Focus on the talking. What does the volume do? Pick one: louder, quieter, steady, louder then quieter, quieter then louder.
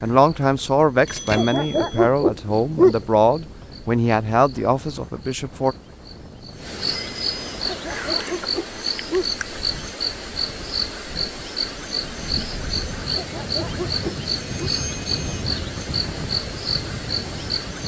steady.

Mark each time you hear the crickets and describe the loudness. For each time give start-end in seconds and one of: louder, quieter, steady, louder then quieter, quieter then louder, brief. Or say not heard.
0.0-17.8 louder.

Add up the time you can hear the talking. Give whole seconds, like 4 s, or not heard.
6 s.